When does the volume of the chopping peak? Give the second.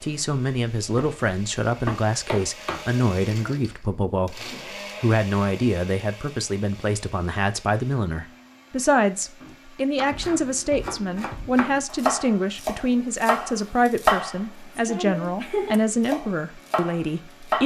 14 s.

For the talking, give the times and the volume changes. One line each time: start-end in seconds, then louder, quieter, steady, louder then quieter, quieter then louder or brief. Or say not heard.
0.0-17.6 steady.